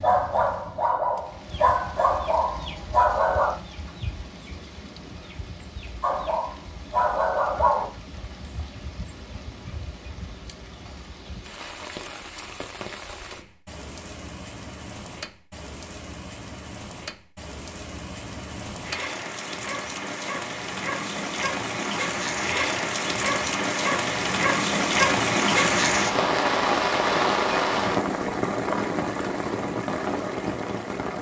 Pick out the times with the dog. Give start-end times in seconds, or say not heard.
0.0-3.5, 6.0-7.8.